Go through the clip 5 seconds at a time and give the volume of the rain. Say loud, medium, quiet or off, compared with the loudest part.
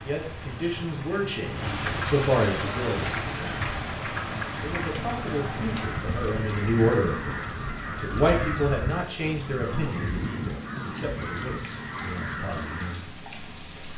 loud, medium, medium.